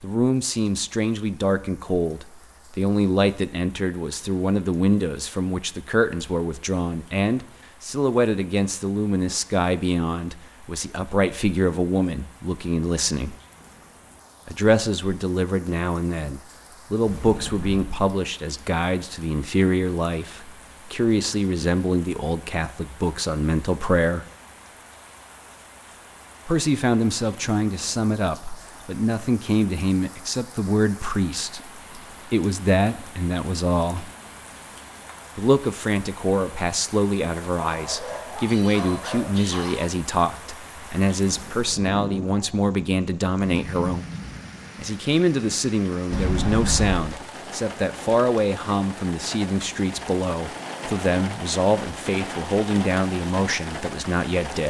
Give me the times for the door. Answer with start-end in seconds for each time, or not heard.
17.1-18.1, 46.1-47.0.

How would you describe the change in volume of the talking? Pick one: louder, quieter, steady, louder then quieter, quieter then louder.
steady.